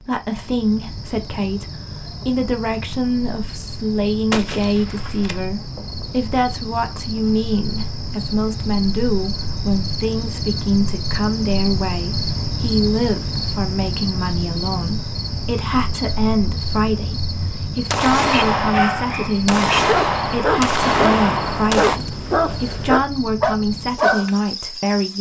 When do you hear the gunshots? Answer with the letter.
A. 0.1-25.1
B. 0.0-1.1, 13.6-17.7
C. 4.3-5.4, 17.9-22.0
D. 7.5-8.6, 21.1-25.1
C.